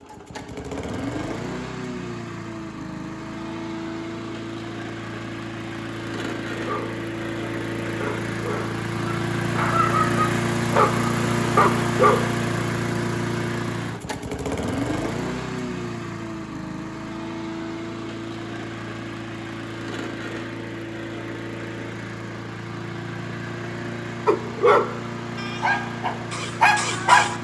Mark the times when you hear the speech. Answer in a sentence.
The speech can't be heard in this clip.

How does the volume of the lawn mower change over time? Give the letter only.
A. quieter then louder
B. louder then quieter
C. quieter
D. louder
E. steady
B.